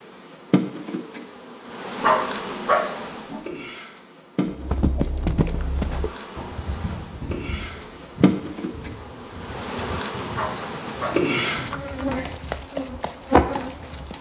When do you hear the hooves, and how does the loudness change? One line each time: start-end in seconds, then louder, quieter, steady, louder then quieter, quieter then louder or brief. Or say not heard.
4.5-14.1 quieter then louder.